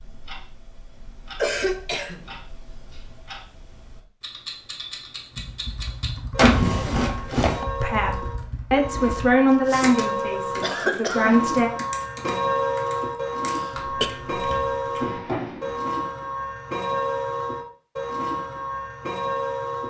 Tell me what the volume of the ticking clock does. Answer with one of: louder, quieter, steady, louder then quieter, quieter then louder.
louder.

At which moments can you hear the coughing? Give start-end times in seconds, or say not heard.
1.4-2.2, 9.4-9.9, 10.6-11.4, 13.4-14.1.